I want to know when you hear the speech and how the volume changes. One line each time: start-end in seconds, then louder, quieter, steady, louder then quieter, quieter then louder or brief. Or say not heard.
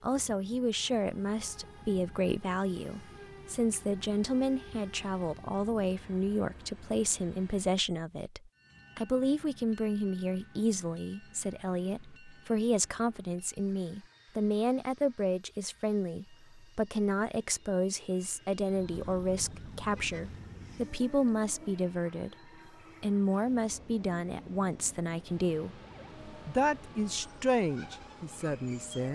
0.0-25.7 steady
26.4-29.1 brief.